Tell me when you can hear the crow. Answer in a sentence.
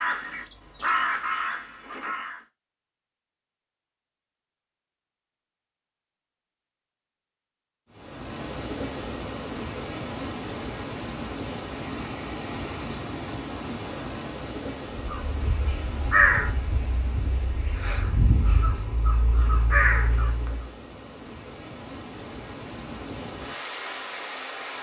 You can hear the crow from 0.0 to 2.4 s and from 14.9 to 20.6 s.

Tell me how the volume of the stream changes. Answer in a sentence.
The volume of the stream goes down, then up.